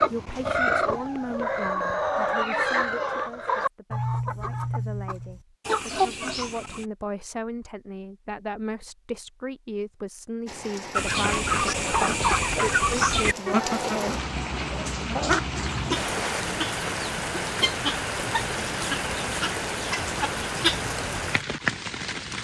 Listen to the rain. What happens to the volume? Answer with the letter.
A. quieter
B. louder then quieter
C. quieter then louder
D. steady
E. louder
E.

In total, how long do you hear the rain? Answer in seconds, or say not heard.
12 s.